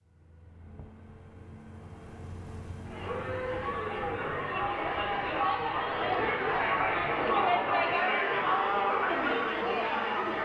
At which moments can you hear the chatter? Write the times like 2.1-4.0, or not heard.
2.8-10.3.